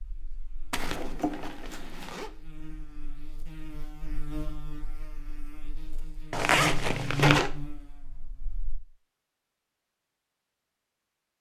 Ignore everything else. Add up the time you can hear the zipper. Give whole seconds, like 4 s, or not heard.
3 s.